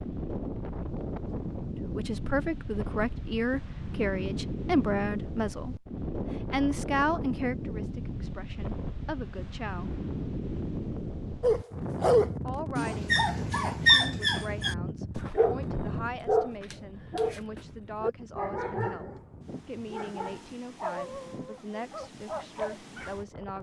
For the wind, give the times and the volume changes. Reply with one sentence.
You can hear the wind from 0.0 to 23.5 s, getting quieter.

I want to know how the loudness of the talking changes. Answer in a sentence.
The loudness of the talking goes down.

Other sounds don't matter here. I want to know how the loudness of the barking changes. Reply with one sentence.
The volume of the barking goes down.